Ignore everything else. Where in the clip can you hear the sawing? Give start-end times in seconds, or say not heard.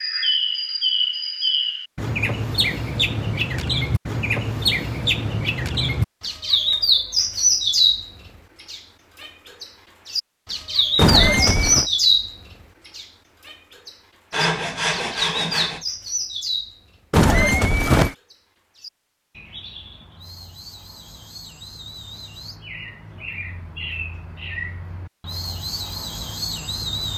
14.3-15.8.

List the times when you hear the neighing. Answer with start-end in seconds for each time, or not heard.
10.9-11.8, 17.1-18.1.